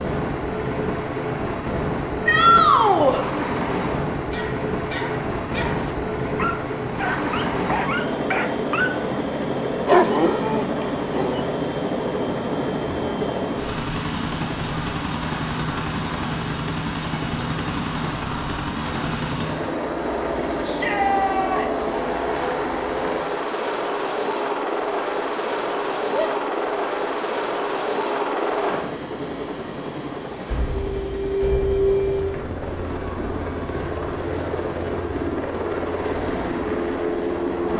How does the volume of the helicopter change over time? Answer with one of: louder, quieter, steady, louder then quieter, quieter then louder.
steady.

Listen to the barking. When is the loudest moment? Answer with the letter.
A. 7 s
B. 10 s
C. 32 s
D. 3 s
B.